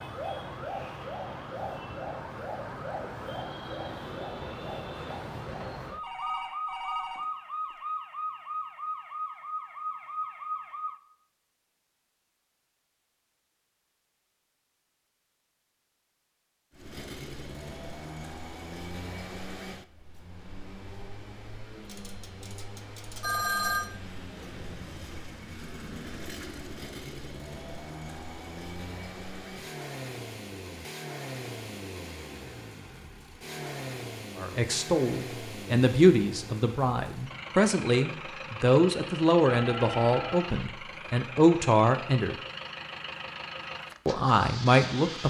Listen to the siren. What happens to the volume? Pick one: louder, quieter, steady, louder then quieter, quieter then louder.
steady.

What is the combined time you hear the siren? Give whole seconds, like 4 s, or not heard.
11 s.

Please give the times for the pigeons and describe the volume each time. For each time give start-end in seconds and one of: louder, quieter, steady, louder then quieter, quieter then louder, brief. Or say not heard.
not heard.